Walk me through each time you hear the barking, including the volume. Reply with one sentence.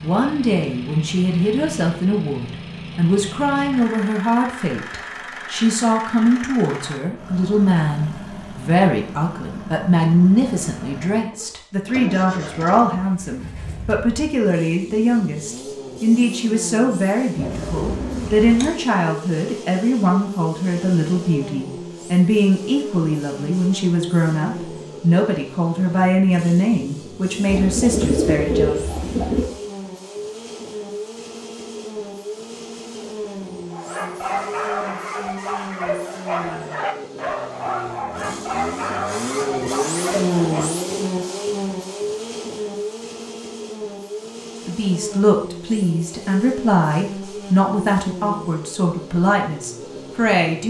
The barking can be heard from 33.7 to 40.8 s, at a steady volume.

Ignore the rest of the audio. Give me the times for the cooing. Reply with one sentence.
The cooing can be heard from 17.4 to 18.7 s and from 27.4 to 29.4 s.